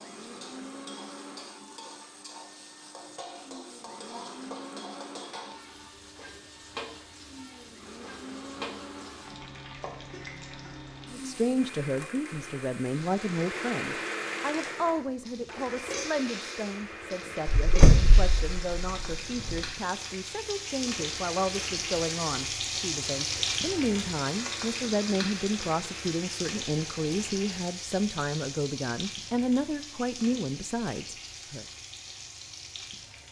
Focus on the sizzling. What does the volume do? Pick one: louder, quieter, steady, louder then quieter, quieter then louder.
louder then quieter.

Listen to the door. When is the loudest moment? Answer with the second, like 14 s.
18 s.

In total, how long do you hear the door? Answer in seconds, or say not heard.
2 s.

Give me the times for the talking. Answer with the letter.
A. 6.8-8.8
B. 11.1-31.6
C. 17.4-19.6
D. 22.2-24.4
B.